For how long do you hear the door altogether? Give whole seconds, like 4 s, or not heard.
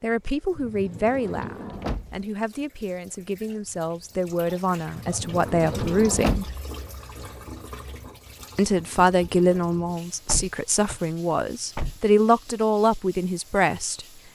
5 s.